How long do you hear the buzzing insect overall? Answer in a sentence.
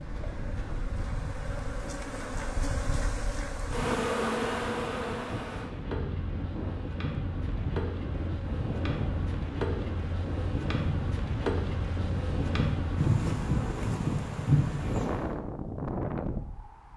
You can hear the buzzing insect for 15 seconds altogether.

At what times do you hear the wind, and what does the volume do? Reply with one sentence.
You can hear the wind from 0.0 to 16.9 s, getting louder.